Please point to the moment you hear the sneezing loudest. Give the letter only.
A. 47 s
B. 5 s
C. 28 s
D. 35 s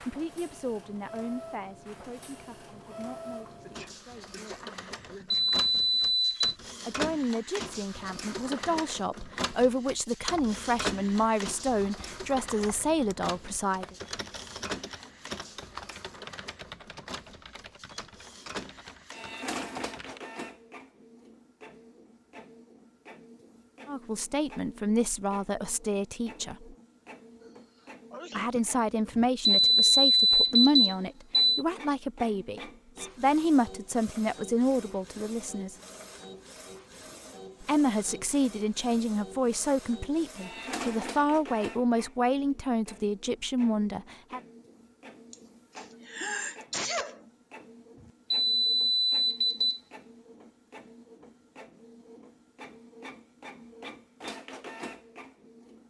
A.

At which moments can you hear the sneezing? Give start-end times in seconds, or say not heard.
3.6-5.5, 27.4-28.7, 45.3-47.2.